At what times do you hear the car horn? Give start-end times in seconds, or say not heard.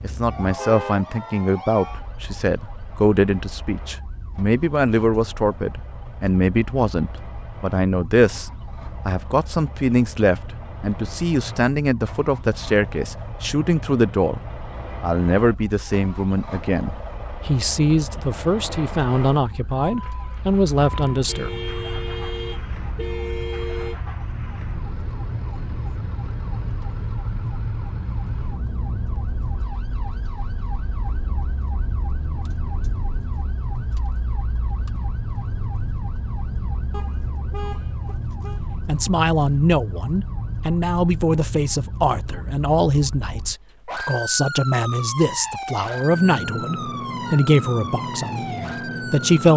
0.4-1.0, 21.2-23.9, 36.9-38.6.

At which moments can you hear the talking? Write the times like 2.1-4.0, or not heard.
0.0-14.4, 15.0-21.5, 38.9-49.5.